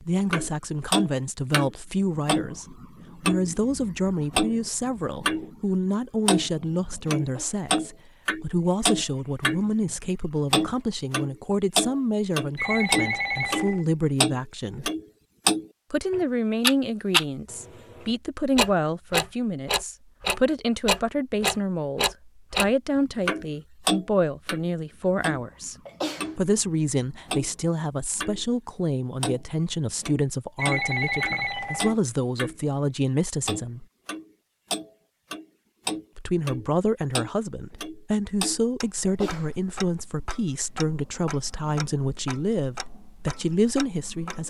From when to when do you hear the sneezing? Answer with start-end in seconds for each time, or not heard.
7.2-7.7, 25.9-26.3, 39.0-39.5.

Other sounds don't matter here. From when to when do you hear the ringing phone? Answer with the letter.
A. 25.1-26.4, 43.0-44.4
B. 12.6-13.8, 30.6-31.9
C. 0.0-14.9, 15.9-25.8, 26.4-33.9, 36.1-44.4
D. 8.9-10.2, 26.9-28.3
B.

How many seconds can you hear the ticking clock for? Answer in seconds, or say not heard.
42 s.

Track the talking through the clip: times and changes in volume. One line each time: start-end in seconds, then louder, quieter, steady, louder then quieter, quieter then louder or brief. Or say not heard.
0.0-14.9 steady
15.9-25.8 steady
26.4-33.9 steady
36.1-44.4 steady.